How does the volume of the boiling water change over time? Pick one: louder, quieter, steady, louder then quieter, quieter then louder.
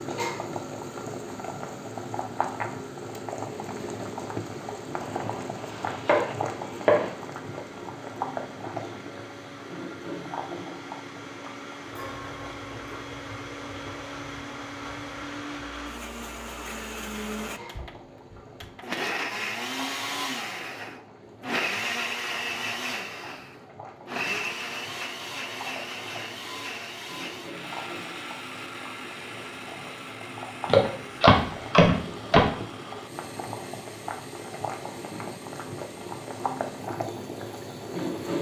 quieter then louder.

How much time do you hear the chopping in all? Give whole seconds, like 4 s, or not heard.
4 s.